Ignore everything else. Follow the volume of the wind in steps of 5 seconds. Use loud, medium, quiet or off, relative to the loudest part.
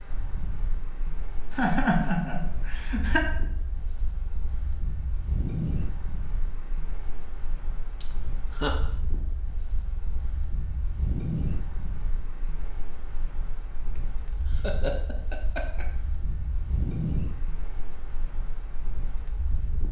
medium, loud, loud, loud.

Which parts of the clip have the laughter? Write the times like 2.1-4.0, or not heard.
1.5-3.3, 8.0-8.8, 14.4-15.8.